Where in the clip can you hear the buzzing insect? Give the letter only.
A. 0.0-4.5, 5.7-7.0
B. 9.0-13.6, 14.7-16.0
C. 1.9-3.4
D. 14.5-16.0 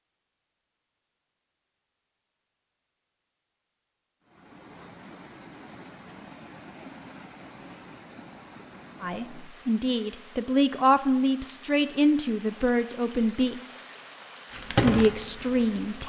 D.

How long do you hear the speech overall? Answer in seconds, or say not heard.
6 s.